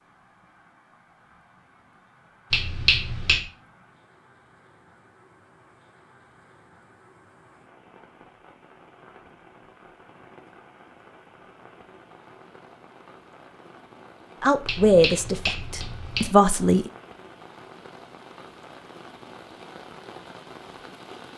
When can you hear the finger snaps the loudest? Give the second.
3 s.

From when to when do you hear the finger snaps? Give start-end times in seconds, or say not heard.
2.5-3.5, 14.7-16.3.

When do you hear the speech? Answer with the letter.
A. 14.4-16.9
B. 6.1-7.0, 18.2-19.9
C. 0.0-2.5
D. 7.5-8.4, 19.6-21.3
A.